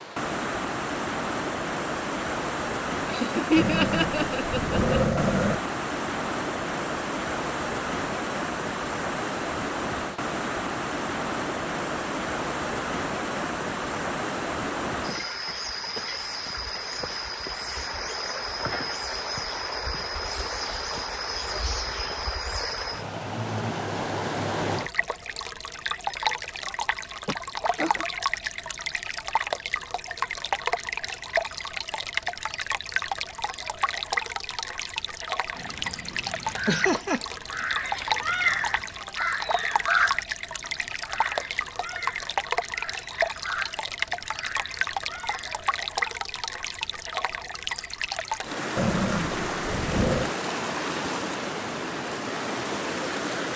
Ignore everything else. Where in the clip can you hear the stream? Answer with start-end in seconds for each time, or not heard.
0.0-53.5.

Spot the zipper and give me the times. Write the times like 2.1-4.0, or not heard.
not heard.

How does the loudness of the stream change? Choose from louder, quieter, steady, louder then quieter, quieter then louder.
steady.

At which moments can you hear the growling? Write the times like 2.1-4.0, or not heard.
3.5-5.5, 48.8-50.4.